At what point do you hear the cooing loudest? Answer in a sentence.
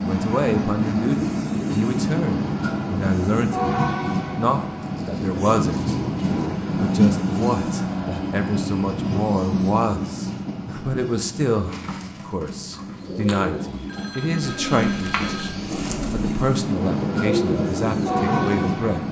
The volume of the cooing peaks at 17 seconds.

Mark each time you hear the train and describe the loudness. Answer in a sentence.
You can hear the train from 0.0 to 19.0 s, getting quieter then louder.